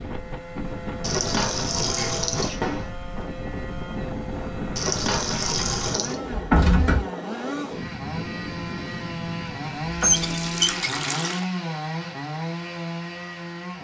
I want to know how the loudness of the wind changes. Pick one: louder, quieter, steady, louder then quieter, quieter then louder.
steady.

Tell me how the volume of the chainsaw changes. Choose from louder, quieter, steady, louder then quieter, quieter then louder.
louder.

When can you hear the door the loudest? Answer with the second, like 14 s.
7 s.